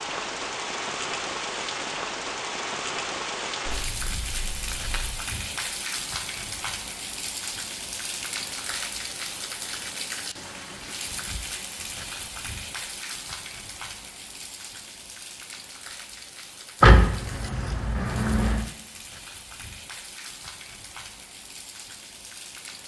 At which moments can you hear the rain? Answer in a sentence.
The rain can be heard from 0.0 to 22.8 s.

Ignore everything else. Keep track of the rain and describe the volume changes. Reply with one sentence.
The loudness of the rain goes down.